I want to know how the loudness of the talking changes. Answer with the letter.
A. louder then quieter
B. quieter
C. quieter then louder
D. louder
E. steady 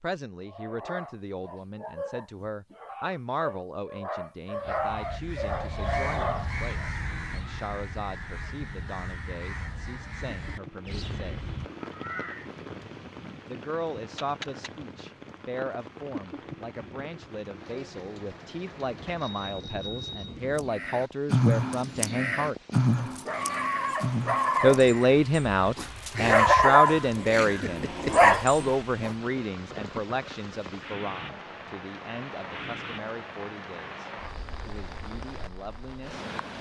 A.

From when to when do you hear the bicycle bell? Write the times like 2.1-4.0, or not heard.
19.1-20.4.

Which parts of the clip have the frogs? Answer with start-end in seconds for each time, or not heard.
not heard.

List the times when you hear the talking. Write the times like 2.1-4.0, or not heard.
0.0-11.4, 13.4-22.6, 24.6-36.2.